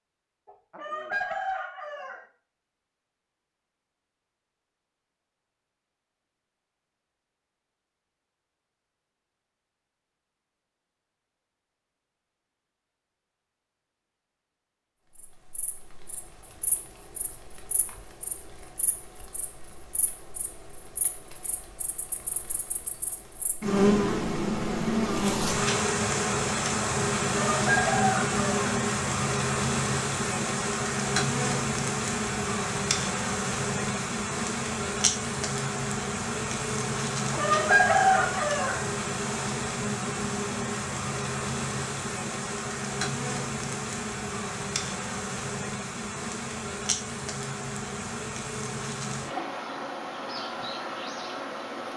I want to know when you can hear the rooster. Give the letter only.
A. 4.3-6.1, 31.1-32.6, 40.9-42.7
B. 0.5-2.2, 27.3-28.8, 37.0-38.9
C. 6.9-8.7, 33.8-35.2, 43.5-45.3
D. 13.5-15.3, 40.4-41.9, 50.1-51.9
B.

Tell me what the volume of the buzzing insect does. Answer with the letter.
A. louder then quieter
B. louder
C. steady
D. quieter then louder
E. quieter
A.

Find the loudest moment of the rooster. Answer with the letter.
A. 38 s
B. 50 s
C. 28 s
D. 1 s
A.